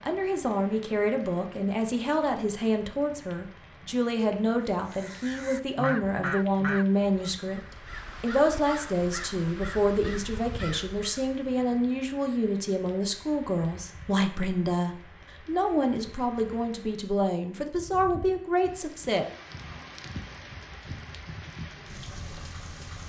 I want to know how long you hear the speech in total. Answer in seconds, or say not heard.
19 s.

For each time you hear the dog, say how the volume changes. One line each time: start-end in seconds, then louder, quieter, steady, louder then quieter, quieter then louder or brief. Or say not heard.
not heard.